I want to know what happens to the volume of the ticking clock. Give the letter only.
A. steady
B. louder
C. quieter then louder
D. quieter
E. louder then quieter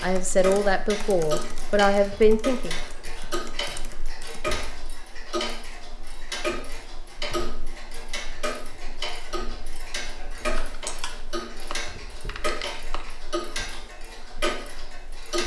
A.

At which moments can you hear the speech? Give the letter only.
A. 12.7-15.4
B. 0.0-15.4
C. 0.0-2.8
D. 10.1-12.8
C.